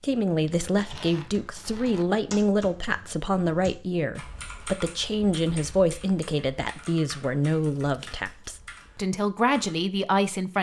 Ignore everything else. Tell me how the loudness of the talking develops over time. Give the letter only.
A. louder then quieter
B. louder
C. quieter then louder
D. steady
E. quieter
D.